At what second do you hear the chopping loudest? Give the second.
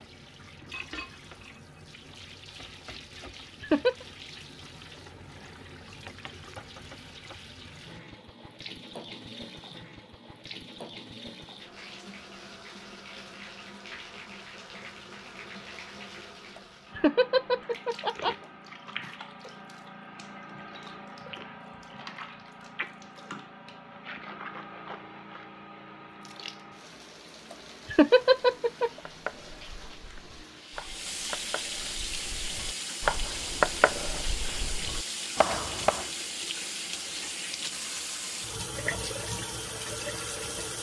34 s.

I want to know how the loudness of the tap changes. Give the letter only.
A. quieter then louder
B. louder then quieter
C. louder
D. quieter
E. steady
C.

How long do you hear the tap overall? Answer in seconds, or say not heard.
41 s.